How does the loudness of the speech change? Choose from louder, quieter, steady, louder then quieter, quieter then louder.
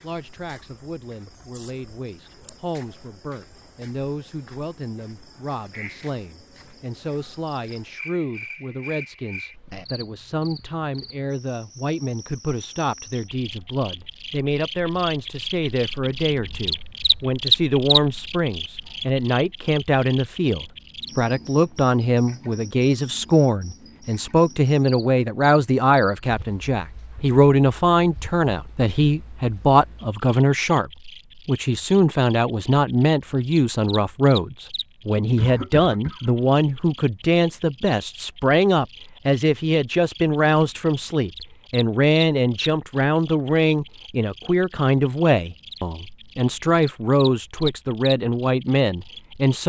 louder.